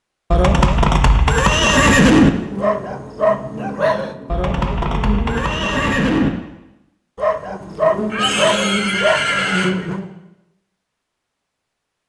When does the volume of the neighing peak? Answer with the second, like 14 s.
2 s.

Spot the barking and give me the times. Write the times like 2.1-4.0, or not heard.
2.5-4.2, 7.2-10.0.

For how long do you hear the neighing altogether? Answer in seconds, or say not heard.
6 s.